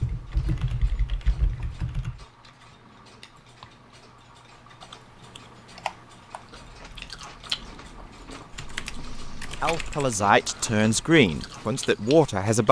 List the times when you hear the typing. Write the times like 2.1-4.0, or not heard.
0.0-2.2, 4.8-6.4, 8.5-10.2.